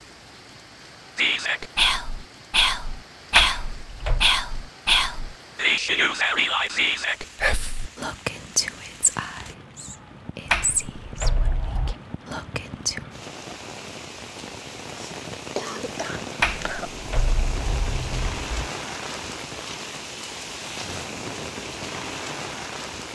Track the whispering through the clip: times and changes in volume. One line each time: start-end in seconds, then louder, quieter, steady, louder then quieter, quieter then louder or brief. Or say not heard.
1.1-13.1 quieter.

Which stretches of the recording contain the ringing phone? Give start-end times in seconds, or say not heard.
not heard.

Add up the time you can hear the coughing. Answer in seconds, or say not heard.
2 s.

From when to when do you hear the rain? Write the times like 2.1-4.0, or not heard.
0.0-23.1.